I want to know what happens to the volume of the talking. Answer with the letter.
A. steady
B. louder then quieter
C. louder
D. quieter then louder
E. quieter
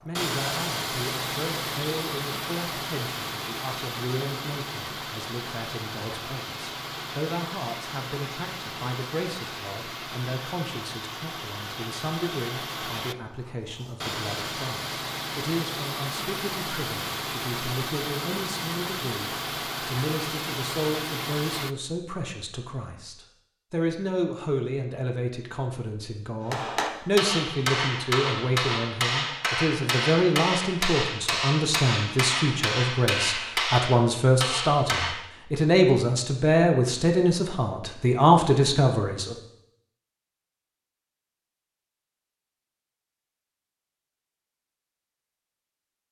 C.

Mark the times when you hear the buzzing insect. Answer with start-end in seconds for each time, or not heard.
not heard.